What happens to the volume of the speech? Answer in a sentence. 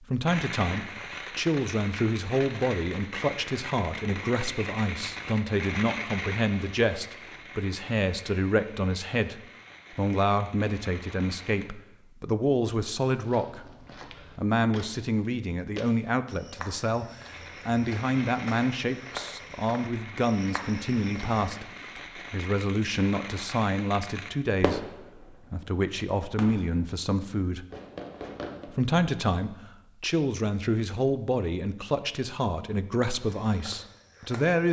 The loudness of the speech stays about the same.